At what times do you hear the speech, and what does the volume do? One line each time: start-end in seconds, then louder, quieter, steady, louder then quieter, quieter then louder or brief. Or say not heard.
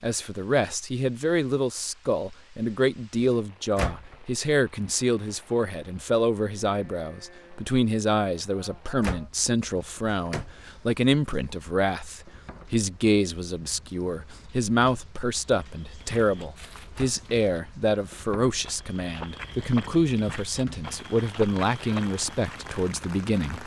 0.0-23.6 steady.